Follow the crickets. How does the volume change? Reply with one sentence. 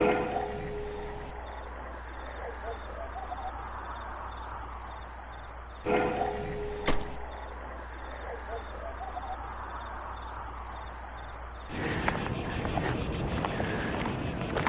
The volume of the crickets stays about the same.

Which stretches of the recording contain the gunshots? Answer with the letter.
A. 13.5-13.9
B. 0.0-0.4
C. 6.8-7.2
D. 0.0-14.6
C.